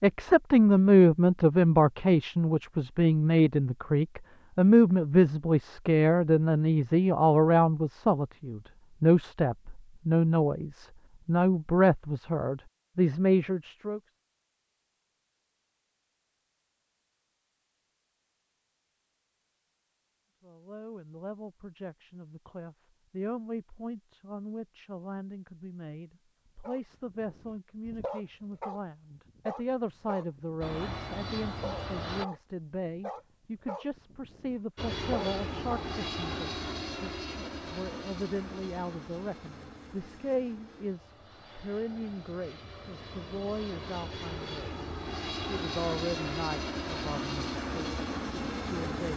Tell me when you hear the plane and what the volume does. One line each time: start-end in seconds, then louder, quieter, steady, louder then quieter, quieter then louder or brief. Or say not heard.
30.6-32.2 brief
34.8-49.1 quieter then louder.